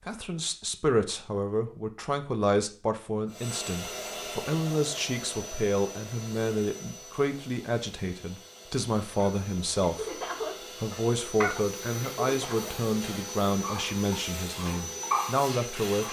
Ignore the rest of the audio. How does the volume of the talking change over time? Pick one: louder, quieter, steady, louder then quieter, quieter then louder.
steady.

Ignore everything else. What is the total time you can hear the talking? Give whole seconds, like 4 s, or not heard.
15 s.